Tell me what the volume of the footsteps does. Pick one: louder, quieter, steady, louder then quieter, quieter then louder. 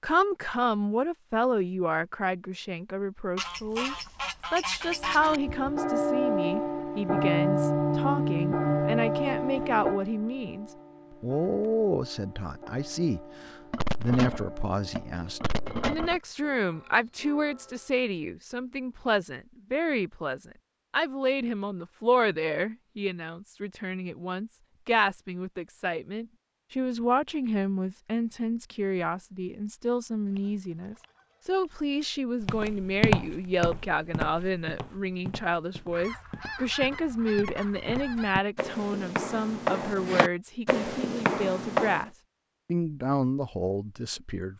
quieter then louder.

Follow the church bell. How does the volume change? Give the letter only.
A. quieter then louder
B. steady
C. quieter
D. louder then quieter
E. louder
C.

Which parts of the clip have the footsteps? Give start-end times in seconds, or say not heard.
32.4-42.0.